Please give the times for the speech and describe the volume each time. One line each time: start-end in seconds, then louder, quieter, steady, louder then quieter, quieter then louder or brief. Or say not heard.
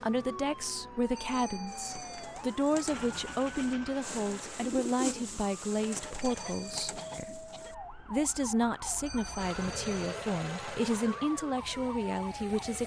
0.0-12.8 steady.